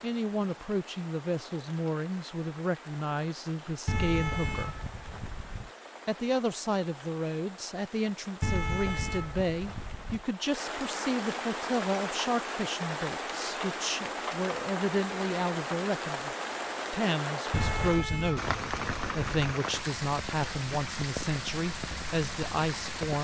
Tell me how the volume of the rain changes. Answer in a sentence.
The volume of the rain goes up.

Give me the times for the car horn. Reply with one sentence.
You can hear the car horn from 3.9 to 5.7 s, from 8.4 to 10.2 s and from 17.5 to 19.3 s.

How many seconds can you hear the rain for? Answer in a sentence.
The rain can be heard for 23 seconds in total.